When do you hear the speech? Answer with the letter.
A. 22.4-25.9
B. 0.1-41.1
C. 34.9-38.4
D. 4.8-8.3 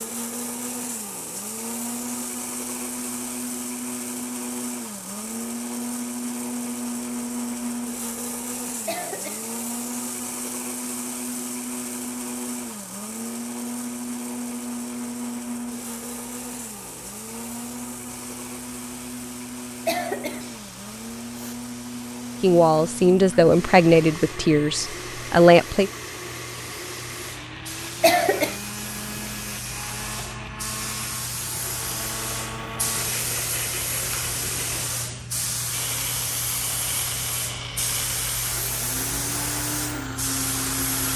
A.